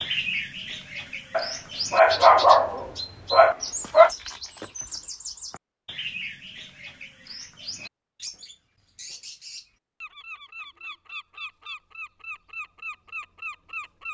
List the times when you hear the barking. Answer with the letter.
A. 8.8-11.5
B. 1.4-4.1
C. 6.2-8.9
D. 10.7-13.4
B.